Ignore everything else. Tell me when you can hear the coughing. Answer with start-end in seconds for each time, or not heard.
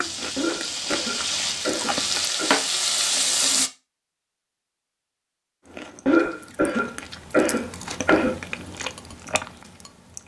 0.3-2.6, 6.0-8.3.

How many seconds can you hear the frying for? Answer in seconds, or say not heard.
4 s.